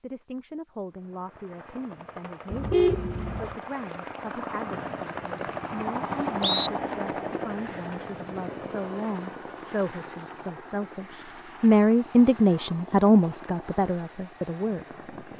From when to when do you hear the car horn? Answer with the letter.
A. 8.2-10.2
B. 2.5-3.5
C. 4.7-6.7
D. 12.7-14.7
B.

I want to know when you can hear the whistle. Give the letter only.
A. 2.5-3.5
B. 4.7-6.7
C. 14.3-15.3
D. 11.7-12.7
B.